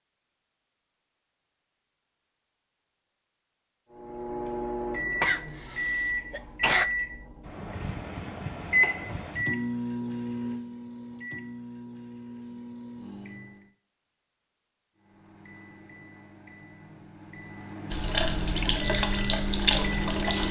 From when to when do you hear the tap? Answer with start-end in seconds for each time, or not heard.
17.9-20.4.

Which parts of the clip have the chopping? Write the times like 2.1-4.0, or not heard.
not heard.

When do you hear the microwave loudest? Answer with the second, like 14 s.
9 s.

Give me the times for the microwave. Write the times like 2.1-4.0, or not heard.
3.9-13.7, 14.9-20.4.